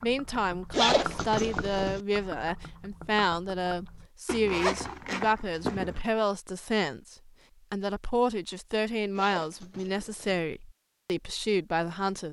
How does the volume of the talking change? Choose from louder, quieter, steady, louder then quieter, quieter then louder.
steady.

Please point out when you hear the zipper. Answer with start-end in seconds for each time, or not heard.
0.7-2.0, 4.2-6.0, 9.2-10.4.